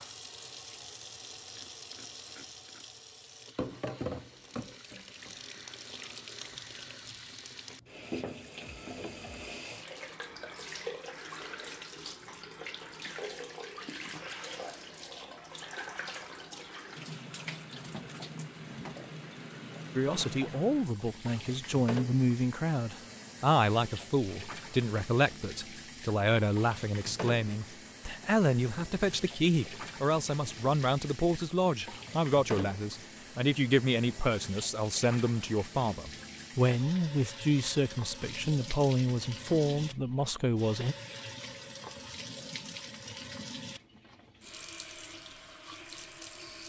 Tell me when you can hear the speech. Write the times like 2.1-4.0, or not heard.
19.9-41.0.